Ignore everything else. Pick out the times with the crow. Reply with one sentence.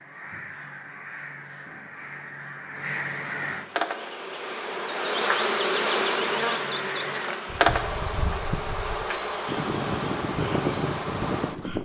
The crow can be heard from 0.0 to 3.6 s and from 6.2 to 11.8 s.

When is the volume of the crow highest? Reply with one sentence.
The loudest moment of the crow is at 11 seconds.